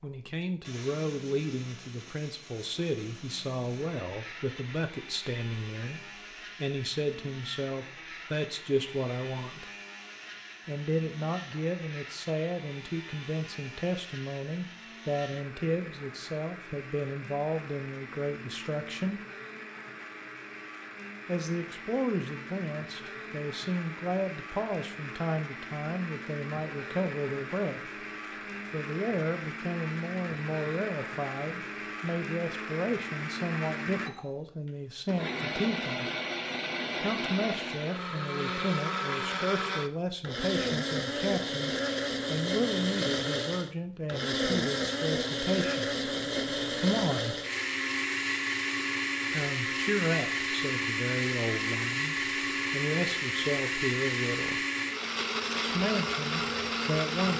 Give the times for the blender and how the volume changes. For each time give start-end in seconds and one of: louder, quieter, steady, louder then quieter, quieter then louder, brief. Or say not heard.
0.0-57.3 louder.